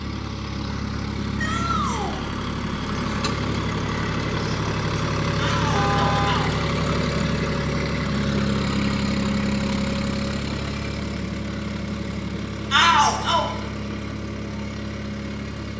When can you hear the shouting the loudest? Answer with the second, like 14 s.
13 s.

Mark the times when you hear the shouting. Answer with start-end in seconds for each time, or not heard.
1.4-2.2, 5.3-6.7, 12.7-13.4.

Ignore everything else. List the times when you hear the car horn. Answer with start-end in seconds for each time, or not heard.
5.7-6.4.